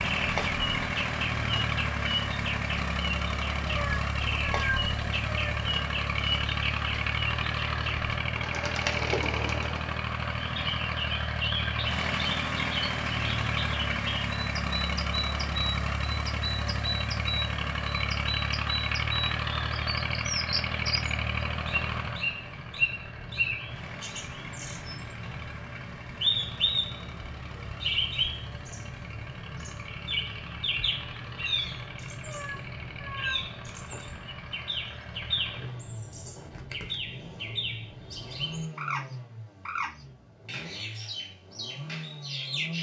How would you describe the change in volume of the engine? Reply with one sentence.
The volume of the engine goes down.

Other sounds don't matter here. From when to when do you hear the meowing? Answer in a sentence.
You can hear the meowing from 3.6 to 5.5 s and from 32.2 to 33.4 s.